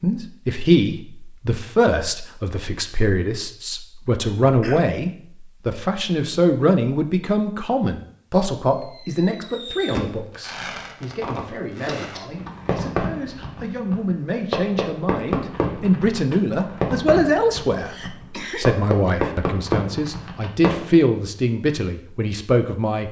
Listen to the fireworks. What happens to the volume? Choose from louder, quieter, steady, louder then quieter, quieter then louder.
louder.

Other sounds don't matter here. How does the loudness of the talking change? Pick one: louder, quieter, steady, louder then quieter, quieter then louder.
quieter then louder.